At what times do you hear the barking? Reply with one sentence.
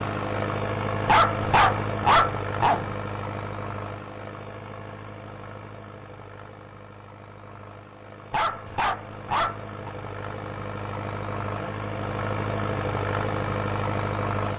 The barking can be heard from 1.1 to 2.9 s and from 8.3 to 9.9 s.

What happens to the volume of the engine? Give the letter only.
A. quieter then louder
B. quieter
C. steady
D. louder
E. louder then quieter
A.